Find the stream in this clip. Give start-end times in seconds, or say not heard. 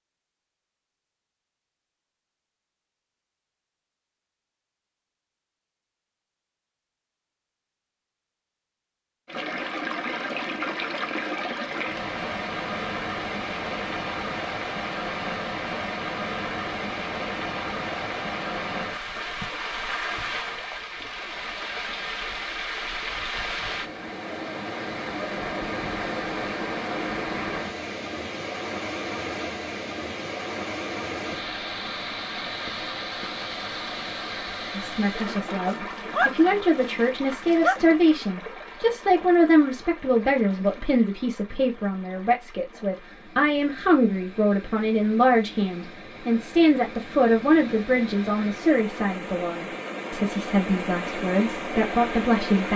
9.2-52.7.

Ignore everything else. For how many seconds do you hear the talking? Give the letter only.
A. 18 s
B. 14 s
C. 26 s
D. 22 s
A.